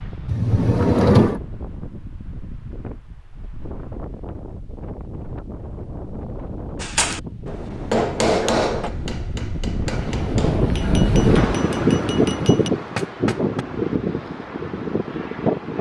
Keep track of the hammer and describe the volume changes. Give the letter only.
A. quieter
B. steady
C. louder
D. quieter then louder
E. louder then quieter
D.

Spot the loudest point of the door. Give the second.
1 s.